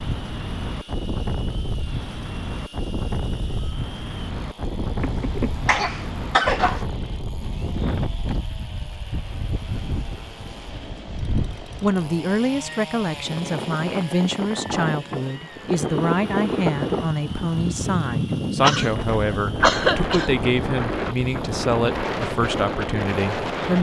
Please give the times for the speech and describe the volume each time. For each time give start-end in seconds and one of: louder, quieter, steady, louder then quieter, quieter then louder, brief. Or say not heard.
11.8-23.7 steady.